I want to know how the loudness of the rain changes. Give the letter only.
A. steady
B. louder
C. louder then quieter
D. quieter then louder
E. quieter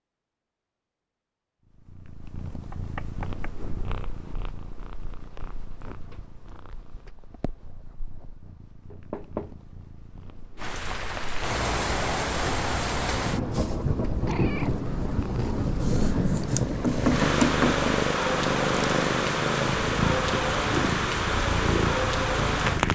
A.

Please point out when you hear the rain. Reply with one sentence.
The rain can be heard from 10.6 to 22.9 s.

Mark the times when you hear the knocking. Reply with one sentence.
The knocking can be heard from 2.7 to 3.5 s, from 8.9 to 9.6 s and from 16.8 to 17.9 s.